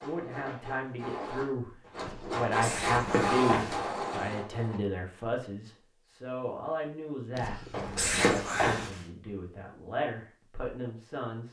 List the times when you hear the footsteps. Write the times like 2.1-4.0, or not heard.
not heard.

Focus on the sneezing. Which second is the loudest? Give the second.
8 s.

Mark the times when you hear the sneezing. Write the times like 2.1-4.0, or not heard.
1.9-3.1, 7.3-8.9.